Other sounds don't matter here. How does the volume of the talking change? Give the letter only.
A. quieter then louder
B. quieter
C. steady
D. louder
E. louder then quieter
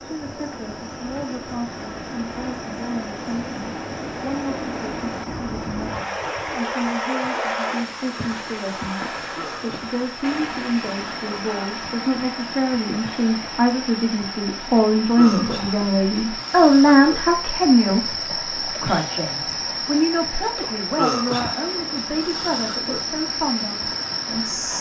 E.